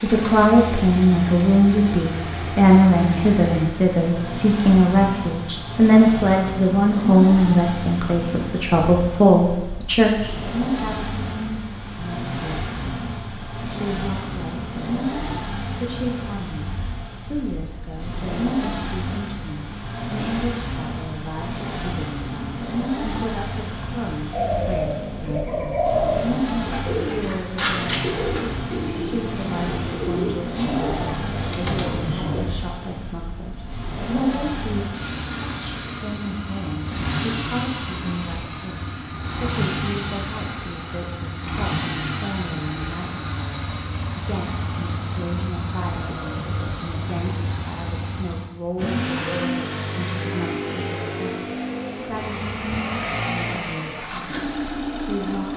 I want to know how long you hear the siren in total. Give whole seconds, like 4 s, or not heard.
not heard.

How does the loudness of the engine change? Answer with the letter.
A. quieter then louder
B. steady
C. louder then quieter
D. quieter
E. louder
B.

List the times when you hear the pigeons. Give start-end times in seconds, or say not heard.
24.3-32.4.